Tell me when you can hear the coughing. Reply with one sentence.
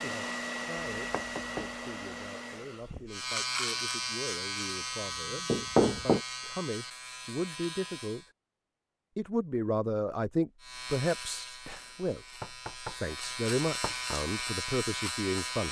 The coughing can't be heard in this clip.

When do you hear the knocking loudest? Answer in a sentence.
The volume of the knocking peaks at 6 seconds.